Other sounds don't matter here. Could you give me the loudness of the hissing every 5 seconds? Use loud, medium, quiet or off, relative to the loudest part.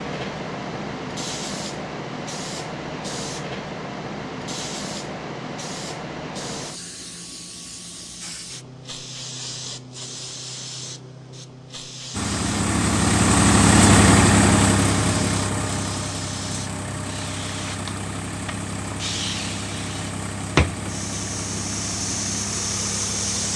loud, medium, medium, medium, loud.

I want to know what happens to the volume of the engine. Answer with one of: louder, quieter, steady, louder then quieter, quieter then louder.
quieter.